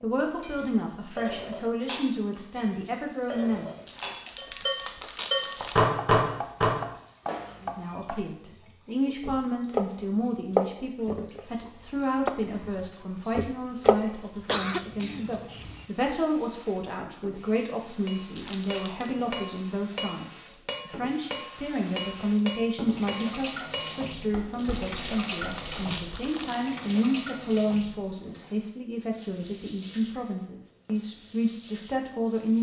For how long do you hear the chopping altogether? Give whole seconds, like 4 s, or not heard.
9 s.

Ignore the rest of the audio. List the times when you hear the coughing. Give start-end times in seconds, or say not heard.
14.4-15.8.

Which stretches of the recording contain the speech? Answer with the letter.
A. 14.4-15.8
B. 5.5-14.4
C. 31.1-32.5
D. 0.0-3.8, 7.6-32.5
D.